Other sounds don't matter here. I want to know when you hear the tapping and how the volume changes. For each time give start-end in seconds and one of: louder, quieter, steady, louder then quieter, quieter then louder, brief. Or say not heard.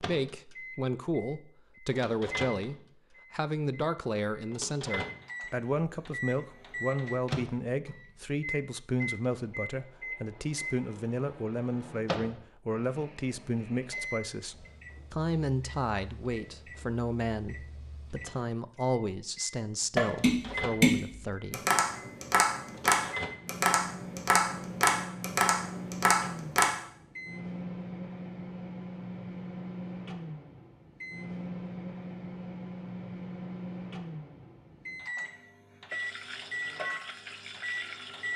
19.9-26.7 steady.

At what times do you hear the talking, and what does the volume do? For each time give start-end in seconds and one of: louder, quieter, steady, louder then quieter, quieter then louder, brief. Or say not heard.
0.0-21.6 steady.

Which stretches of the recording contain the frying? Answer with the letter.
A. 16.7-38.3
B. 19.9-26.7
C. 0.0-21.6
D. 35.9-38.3
D.